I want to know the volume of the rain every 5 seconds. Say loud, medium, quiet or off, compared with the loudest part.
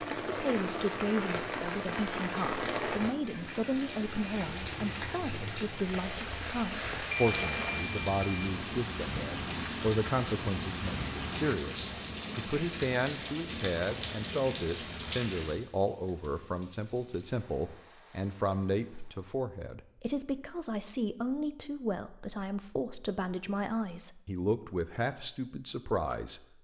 loud, loud, loud, medium, off, off.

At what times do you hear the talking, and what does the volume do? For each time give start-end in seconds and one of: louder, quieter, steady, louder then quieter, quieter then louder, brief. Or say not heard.
0.2-26.4 steady.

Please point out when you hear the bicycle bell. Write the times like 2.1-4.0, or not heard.
7.1-8.4.